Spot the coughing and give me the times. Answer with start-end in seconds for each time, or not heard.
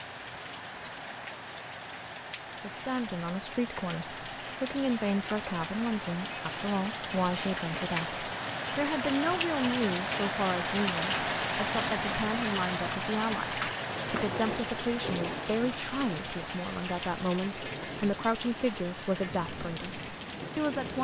not heard.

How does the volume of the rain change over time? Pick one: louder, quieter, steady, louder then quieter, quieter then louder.
louder then quieter.